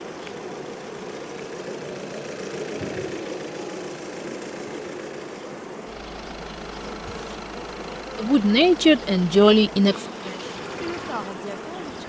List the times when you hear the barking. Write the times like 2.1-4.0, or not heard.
not heard.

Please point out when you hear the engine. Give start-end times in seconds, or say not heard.
0.0-12.0.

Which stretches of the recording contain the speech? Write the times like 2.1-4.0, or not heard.
8.2-12.0.